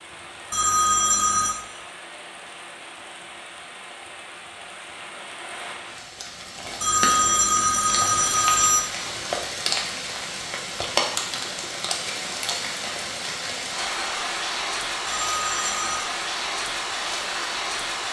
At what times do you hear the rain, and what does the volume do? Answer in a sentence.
You can hear the rain from 0.0 to 18.0 s, getting louder.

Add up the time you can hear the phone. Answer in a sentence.
You can hear the phone for 4 seconds altogether.